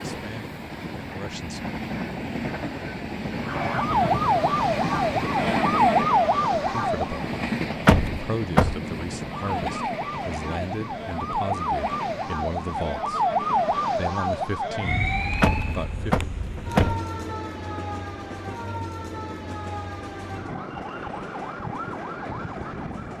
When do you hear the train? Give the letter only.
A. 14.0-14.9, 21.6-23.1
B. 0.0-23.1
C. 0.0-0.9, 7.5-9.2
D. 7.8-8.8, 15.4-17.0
B.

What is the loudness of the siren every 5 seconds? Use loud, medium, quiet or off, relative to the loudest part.
loud, loud, loud, medium, medium.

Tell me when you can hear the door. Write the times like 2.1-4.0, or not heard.
7.8-8.8, 15.4-17.0.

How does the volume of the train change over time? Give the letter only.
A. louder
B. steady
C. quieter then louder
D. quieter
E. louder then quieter
D.